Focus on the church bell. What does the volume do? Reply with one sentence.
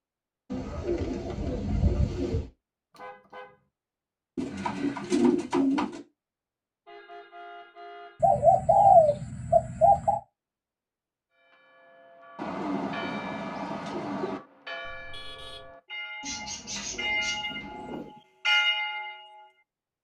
The volume of the church bell goes up.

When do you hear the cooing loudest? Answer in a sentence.
The loudest moment of the cooing is at 9 seconds.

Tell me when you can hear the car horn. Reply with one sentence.
The car horn can be heard from 2.9 to 3.5 s, from 6.8 to 8.2 s and from 14.8 to 15.7 s.